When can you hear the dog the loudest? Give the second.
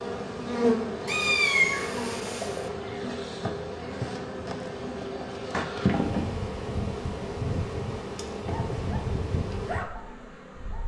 10 s.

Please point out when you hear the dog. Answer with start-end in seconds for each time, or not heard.
8.5-10.8.